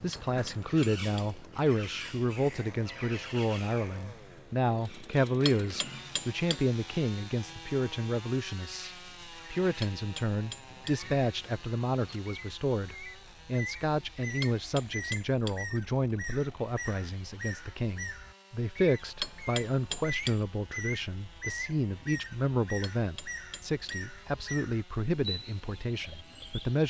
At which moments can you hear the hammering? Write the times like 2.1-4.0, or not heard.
0.1-1.4, 5.5-6.7, 9.8-11.1, 14.4-15.7, 19.2-20.4, 22.8-24.1.